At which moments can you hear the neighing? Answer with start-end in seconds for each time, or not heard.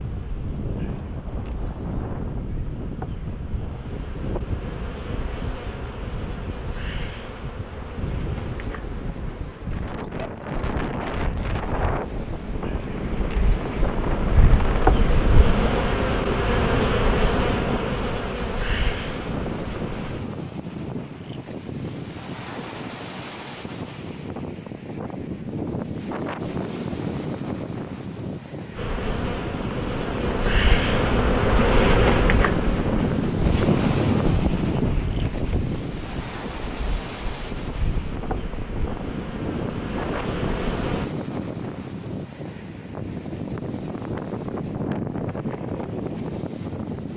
not heard.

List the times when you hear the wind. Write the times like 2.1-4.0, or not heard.
0.0-47.1.